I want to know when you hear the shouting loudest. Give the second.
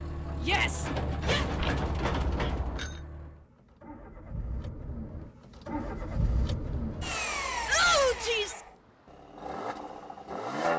8 s.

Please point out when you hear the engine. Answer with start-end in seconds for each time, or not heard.
0.0-10.7.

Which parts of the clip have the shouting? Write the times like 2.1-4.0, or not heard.
0.4-1.4, 7.7-8.6.